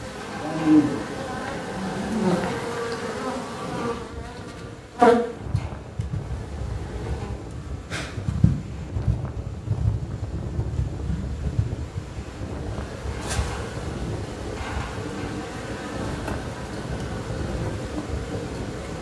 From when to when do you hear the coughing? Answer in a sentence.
You can't hear the coughing here.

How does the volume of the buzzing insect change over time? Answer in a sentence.
The loudness of the buzzing insect goes down.